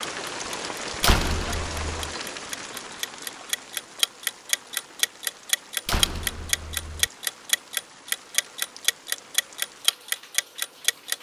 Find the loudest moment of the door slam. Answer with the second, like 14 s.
1 s.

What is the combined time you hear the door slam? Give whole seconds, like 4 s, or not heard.
2 s.